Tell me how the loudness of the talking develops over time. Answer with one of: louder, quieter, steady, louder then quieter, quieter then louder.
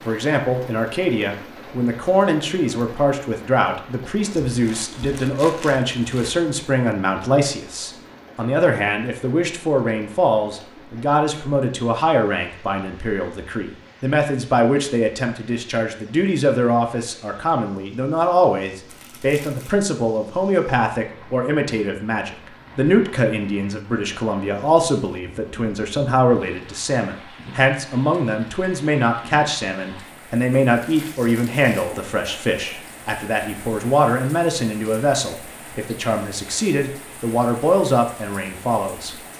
steady.